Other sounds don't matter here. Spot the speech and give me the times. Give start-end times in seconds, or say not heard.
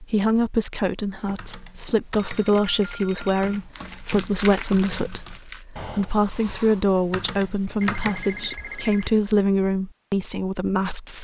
0.0-11.1.